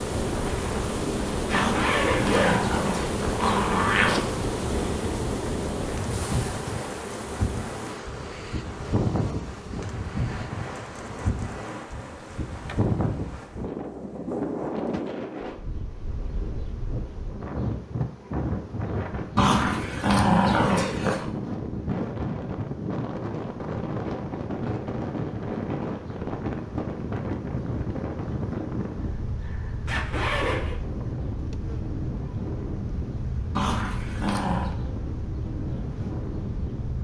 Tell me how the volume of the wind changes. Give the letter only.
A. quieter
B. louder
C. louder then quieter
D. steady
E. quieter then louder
D.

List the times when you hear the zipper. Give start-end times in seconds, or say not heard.
1.4-2.6, 29.9-30.8.